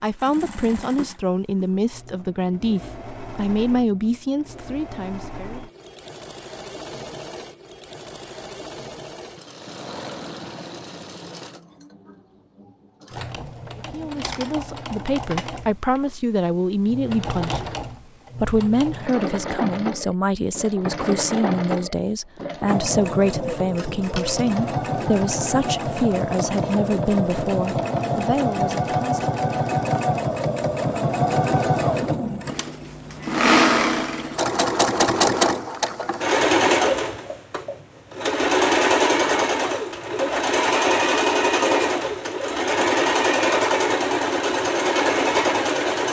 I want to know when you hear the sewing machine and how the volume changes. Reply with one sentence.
The sewing machine can be heard from 0.0 to 46.0 s, getting louder.